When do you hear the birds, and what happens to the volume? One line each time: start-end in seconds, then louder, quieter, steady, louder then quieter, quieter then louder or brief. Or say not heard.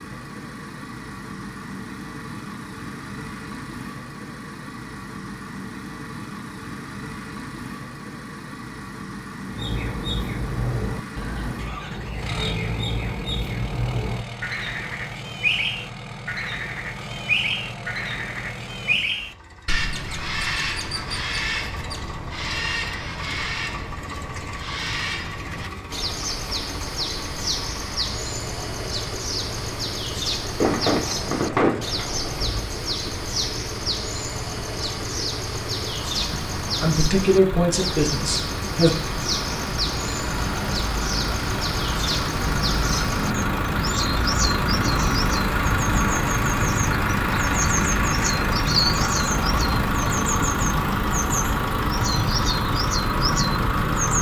9.4-54.1 steady.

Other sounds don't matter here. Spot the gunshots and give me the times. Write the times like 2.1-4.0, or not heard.
30.6-32.6.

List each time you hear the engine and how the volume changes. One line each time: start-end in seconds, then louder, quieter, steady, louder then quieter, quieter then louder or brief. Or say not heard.
0.0-54.1 louder.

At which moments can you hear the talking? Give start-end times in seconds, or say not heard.
36.8-38.9.